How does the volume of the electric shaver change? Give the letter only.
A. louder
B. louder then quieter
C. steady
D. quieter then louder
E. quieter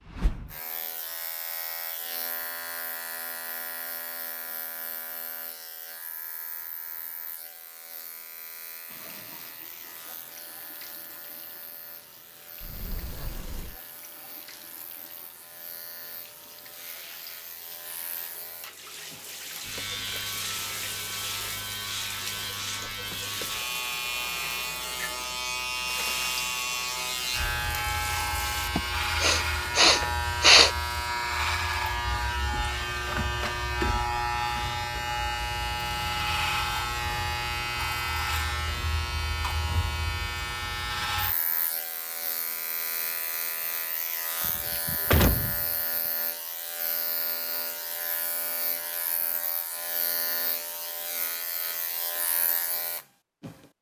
B.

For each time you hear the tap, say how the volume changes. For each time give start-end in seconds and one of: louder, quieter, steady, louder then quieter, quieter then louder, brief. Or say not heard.
8.8-28.7 louder.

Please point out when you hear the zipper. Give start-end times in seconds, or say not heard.
not heard.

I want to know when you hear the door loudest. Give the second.
45 s.